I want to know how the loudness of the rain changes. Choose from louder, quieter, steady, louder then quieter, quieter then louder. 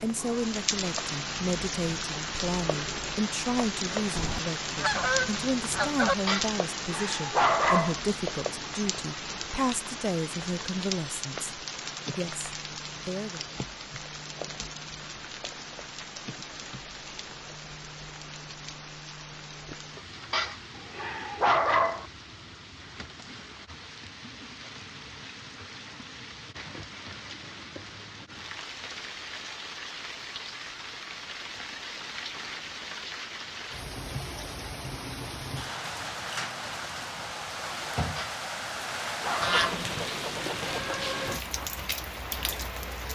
quieter then louder.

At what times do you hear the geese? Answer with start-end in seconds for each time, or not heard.
4.2-6.2, 39.4-40.9.